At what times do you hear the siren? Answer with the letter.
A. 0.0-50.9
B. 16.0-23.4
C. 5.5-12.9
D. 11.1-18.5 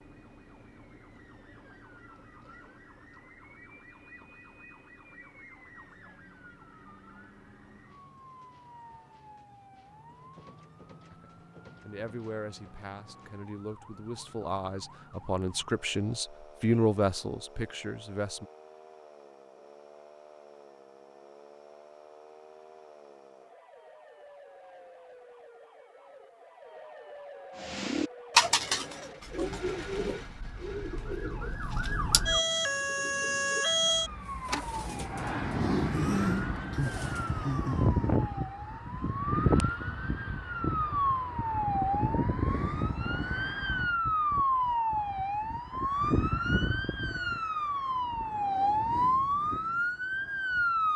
A.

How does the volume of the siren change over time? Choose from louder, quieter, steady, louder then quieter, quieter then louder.
louder.